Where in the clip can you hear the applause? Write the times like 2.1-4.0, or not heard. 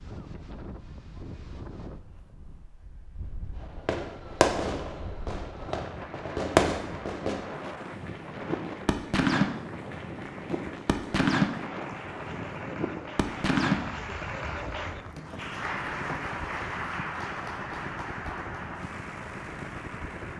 6.0-20.3.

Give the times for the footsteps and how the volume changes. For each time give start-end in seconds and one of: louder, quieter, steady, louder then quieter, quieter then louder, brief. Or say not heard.
not heard.